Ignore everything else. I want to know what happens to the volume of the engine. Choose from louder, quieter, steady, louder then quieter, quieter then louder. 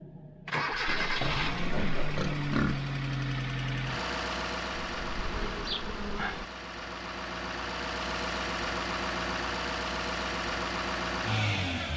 quieter then louder.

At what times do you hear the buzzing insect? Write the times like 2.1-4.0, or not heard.
5.0-6.5.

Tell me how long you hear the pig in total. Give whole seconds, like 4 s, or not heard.
2 s.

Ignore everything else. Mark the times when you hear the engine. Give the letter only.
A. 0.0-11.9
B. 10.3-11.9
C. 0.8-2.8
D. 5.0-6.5
A.